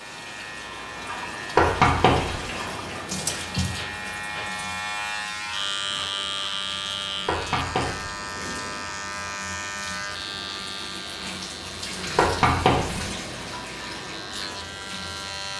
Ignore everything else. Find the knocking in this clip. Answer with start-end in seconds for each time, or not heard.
1.6-2.5, 7.2-8.2, 12.2-13.1.